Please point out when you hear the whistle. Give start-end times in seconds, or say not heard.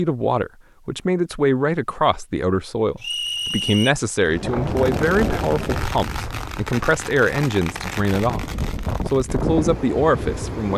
3.0-4.0.